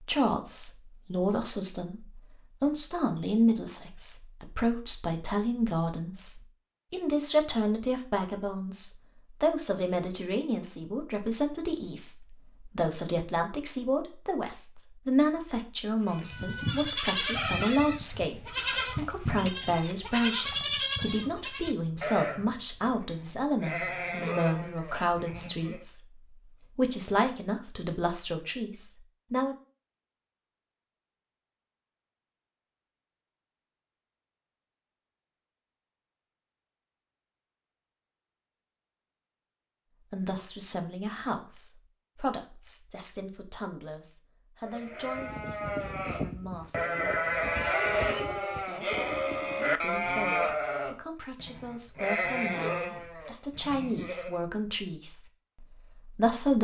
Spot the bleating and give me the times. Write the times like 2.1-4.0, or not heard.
16.1-25.9, 44.6-54.4.